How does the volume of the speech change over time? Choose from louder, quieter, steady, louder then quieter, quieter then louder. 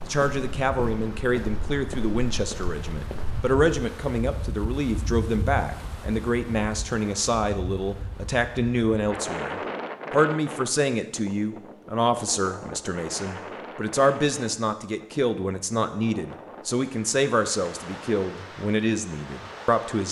steady.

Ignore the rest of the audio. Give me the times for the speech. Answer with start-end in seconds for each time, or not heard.
0.1-20.0.